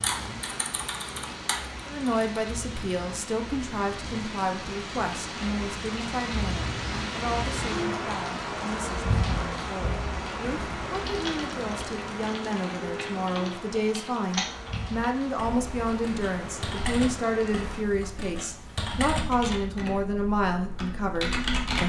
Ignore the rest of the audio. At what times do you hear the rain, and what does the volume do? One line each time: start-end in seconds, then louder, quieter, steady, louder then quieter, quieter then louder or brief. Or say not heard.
0.0-17.8 louder then quieter.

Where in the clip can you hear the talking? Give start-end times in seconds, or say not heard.
1.9-21.8.